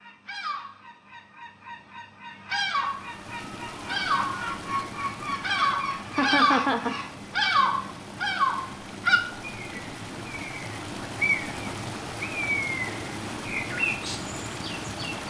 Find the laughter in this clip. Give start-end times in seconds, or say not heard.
6.1-7.0.